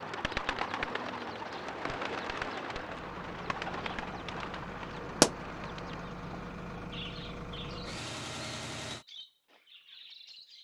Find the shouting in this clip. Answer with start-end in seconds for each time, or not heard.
not heard.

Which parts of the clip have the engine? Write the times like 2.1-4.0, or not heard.
2.9-9.1.